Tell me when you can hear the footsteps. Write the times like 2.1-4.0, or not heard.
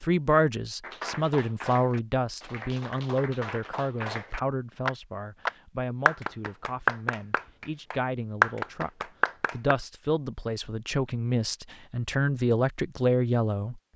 not heard.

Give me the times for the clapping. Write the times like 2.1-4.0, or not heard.
0.8-9.8.